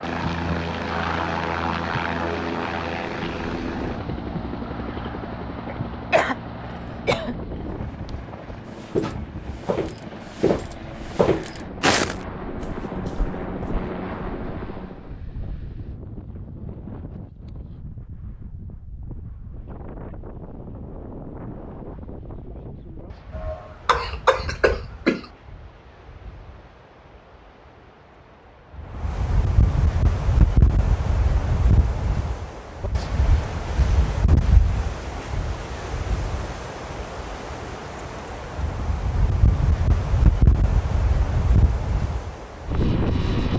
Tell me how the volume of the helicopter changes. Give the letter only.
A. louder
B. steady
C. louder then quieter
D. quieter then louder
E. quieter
D.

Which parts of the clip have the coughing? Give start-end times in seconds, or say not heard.
5.7-7.3, 23.4-25.2.